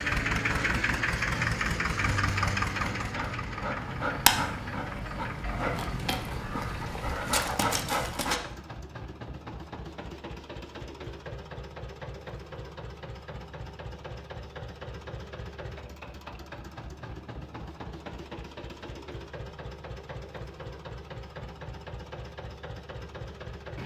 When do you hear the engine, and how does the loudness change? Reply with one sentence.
You can hear the engine from 0.0 to 23.8 s, getting quieter.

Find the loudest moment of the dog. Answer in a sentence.
The loudest moment of the dog is at 4 seconds.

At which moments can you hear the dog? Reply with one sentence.
You can hear the dog from 0.4 to 8.4 s.